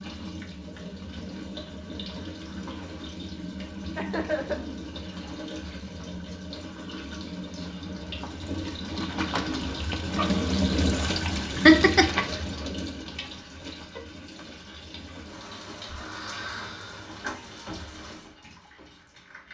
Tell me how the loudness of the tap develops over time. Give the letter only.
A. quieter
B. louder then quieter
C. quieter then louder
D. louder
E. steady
B.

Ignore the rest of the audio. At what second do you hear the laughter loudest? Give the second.
12 s.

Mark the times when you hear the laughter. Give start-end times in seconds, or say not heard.
4.0-4.6, 11.7-12.2.